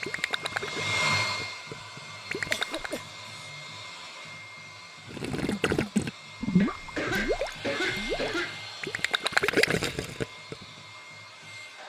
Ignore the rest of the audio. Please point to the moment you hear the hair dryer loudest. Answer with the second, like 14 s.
1 s.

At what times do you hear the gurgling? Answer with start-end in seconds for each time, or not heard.
0.0-3.0, 5.0-10.6.